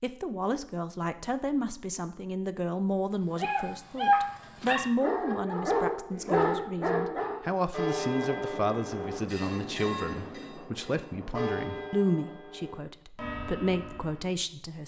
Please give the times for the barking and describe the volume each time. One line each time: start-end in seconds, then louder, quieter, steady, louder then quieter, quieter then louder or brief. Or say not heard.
3.1-7.5 quieter then louder.